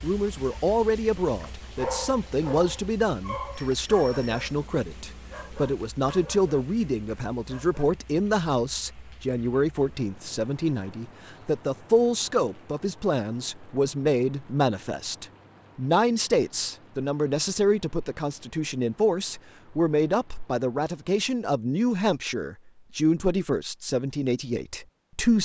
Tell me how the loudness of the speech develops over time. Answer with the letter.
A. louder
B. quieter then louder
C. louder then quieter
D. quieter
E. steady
E.